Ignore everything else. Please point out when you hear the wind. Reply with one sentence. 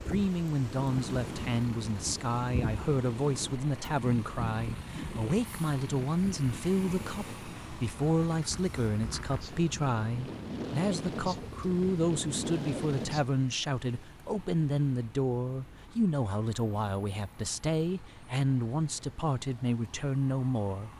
You can hear the wind from 0.0 to 13.3 s.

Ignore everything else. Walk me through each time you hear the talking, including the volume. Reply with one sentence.
You can hear the talking from 0.1 to 20.9 s, at a steady volume.